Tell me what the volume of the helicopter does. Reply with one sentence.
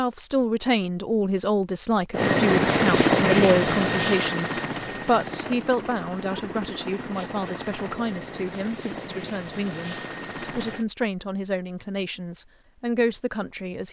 The volume of the helicopter goes down.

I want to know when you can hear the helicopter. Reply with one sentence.
The helicopter can be heard from 2.1 to 10.8 s.